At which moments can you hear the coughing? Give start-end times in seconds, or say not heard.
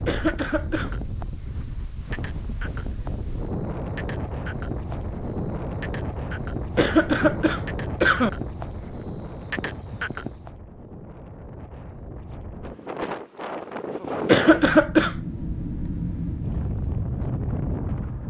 0.1-0.9, 6.8-8.3, 14.2-15.2.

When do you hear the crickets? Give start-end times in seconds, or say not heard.
0.0-10.6.